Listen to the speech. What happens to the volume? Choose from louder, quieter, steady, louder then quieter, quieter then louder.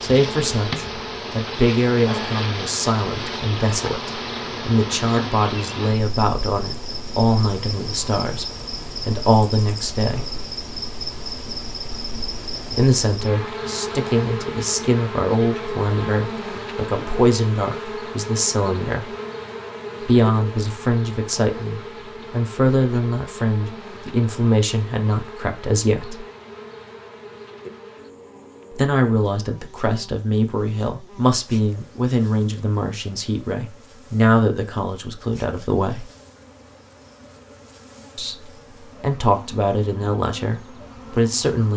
steady.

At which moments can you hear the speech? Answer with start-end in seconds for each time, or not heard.
0.0-10.3, 12.8-19.1, 20.1-26.2, 28.7-36.1, 38.1-41.7.